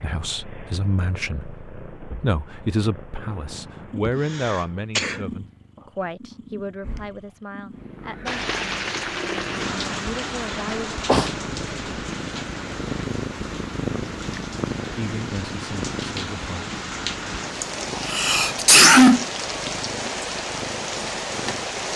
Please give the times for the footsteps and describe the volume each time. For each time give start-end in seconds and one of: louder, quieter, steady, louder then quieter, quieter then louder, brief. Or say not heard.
not heard.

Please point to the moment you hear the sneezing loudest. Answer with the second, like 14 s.
19 s.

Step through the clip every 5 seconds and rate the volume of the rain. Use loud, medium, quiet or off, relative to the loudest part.
off, loud, medium, loud, loud.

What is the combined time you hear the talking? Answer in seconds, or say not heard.
13 s.